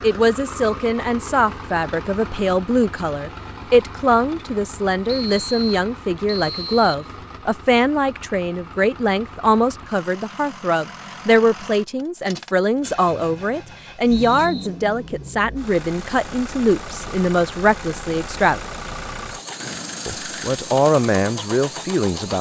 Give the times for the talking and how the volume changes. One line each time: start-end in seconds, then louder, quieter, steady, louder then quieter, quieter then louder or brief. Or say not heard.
0.0-18.6 steady
20.1-22.3 brief.